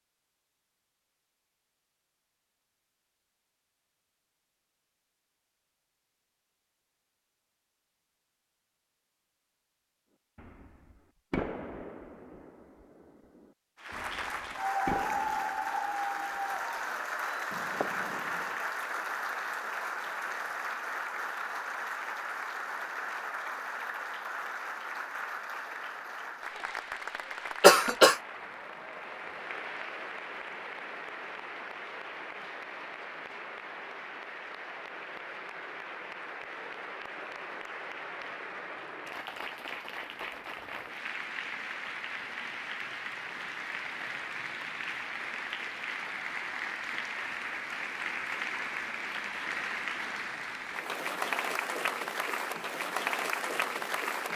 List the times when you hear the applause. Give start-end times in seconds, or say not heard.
13.8-54.3.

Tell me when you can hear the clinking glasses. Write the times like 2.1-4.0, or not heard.
not heard.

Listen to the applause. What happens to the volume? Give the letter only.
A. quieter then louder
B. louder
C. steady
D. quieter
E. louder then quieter
A.